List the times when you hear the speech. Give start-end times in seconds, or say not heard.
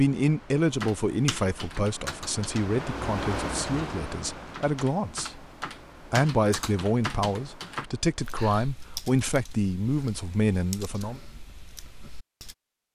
0.0-5.5, 6.1-11.2.